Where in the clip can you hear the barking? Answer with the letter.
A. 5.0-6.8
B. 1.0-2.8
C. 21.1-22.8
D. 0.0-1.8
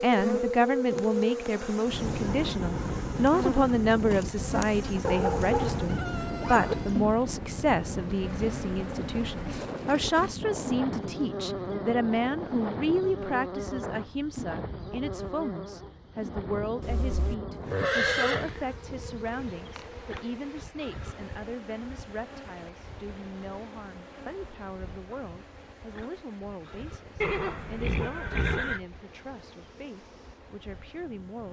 A.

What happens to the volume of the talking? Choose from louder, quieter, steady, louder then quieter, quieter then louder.
quieter.